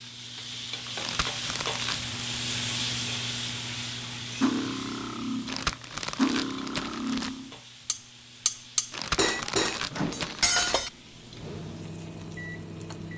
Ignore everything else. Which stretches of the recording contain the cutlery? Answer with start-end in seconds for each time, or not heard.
4.4-10.9.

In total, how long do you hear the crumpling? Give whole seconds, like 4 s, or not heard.
5 s.